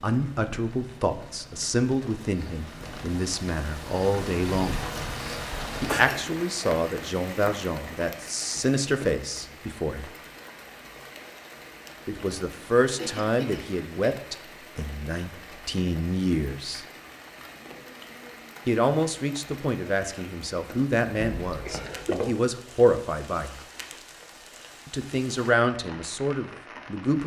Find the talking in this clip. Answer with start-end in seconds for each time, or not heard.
0.0-4.8, 5.8-10.1, 12.1-16.9, 18.6-23.6, 24.9-27.2.